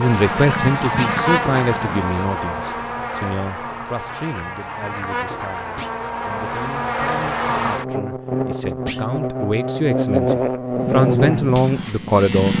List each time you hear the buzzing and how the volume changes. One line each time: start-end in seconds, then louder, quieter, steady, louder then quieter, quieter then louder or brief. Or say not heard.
0.0-12.5 quieter then louder.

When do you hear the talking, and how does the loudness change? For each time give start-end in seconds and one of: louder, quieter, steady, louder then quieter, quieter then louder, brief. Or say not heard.
0.0-12.5 quieter then louder.